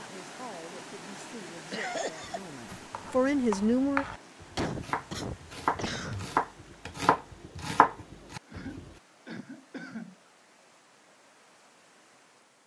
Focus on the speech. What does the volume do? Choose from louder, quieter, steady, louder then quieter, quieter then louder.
louder.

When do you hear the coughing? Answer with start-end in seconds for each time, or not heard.
1.7-2.4, 4.5-6.3, 8.4-10.2.